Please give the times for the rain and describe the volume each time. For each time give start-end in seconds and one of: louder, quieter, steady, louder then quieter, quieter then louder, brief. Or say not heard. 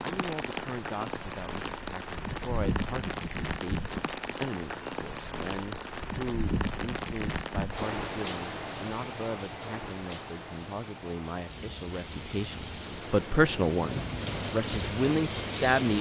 0.0-15.9 quieter then louder.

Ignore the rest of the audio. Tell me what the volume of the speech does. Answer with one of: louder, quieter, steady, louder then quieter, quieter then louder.
louder.